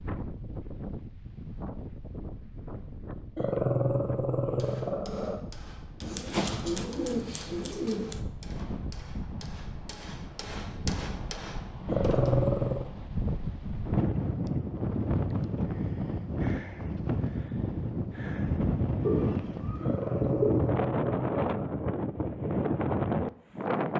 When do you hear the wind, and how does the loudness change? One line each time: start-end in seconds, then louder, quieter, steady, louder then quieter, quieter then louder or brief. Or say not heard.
0.0-23.9 louder.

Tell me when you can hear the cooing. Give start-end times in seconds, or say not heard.
6.0-8.2, 19.0-20.8.